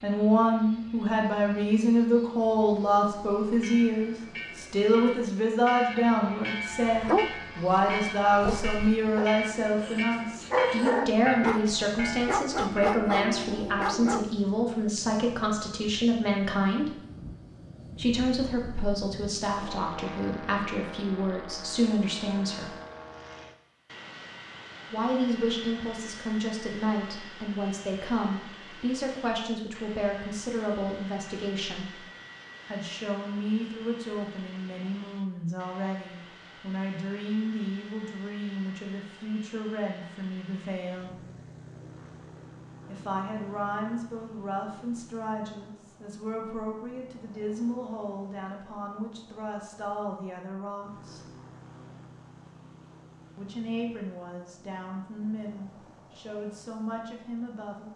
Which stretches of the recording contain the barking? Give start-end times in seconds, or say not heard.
6.8-14.2.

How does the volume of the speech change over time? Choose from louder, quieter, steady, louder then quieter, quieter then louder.
quieter.